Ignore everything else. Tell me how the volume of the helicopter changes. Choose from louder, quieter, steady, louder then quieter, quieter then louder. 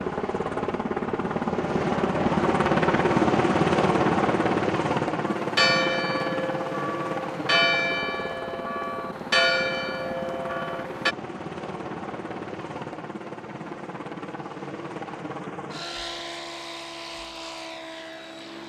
quieter.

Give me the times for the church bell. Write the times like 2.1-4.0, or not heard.
5.3-11.2.